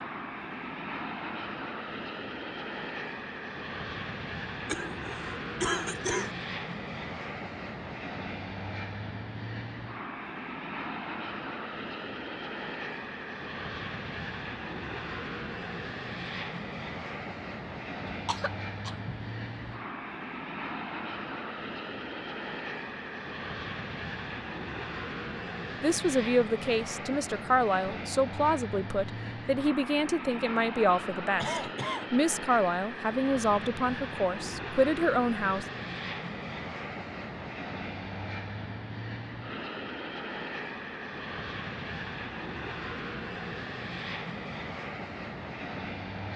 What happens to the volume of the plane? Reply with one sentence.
The volume of the plane stays about the same.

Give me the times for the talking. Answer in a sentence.
The talking can be heard from 25.8 to 35.6 s.